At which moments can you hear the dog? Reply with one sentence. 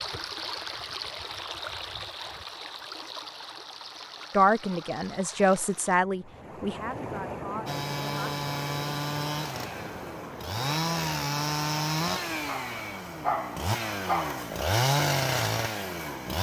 The dog can be heard from 12.4 to 14.5 s.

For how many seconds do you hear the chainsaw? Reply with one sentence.
The chainsaw can be heard for 9 seconds in total.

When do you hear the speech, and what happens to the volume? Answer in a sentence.
You can hear the speech from 4.3 to 8.3 s, getting louder then quieter.